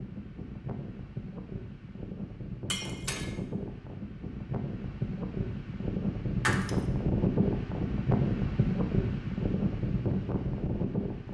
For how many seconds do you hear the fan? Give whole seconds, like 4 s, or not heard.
11 s.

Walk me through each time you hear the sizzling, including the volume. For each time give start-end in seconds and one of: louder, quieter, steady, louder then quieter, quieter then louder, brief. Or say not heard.
not heard.